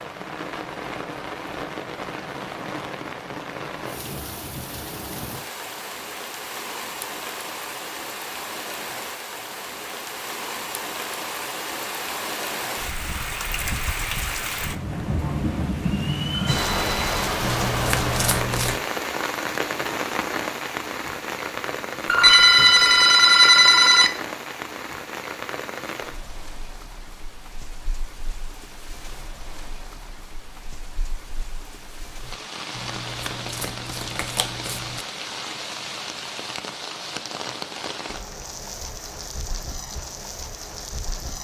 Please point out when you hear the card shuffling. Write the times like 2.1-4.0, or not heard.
17.4-18.8, 32.8-35.0.